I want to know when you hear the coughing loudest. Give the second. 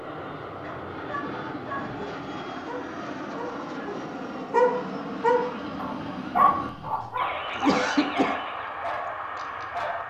8 s.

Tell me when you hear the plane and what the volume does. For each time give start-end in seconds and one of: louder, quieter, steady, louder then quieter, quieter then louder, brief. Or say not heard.
0.0-10.0 steady.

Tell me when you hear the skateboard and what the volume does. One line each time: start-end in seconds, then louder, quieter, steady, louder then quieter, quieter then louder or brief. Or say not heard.
not heard.